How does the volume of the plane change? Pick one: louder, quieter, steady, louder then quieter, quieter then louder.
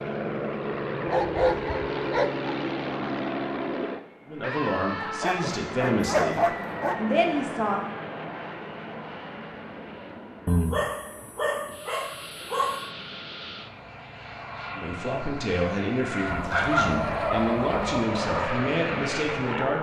quieter then louder.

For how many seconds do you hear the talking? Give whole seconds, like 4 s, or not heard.
9 s.